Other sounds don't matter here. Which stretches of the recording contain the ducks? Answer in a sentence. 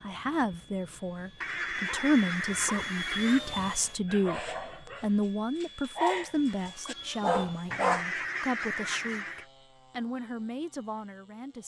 You can hear the ducks from 1.4 to 3.4 s and from 7.7 to 9.4 s.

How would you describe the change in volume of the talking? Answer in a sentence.
The volume of the talking goes down.